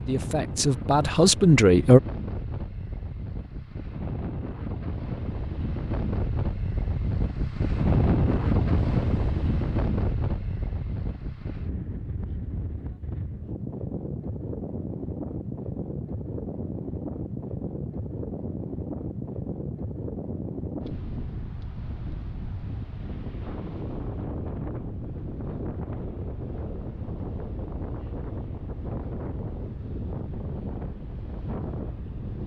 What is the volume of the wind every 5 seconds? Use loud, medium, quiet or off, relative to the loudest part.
medium, loud, medium, medium, medium, medium, medium.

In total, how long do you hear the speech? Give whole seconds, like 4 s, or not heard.
2 s.